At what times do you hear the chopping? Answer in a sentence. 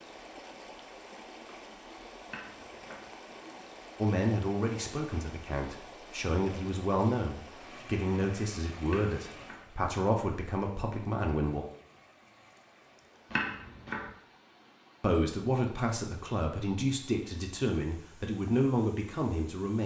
The chopping can be heard from 2.2 to 3.0 s, from 8.8 to 9.7 s and from 13.3 to 14.1 s.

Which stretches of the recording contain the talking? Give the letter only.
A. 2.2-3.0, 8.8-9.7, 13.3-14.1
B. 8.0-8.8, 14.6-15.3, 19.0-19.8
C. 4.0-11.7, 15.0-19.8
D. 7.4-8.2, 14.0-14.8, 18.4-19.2
C.